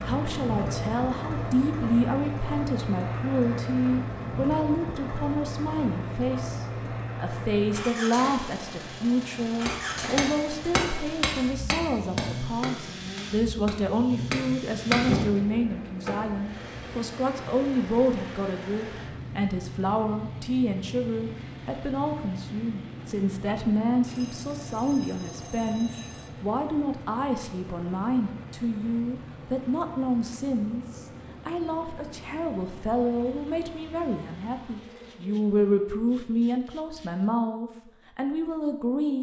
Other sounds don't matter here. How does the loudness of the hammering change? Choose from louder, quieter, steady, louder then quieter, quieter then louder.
quieter then louder.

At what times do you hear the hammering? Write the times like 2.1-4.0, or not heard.
9.7-15.4.